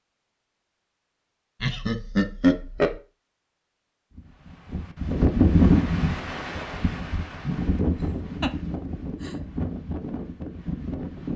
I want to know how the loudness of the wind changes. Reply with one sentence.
The loudness of the wind goes down.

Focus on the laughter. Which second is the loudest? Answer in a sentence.
The loudest moment of the laughter is at 2 seconds.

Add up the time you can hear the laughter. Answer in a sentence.
You can hear the laughter for 2 seconds altogether.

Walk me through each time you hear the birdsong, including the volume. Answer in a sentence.
The birdsong can't be heard in this clip.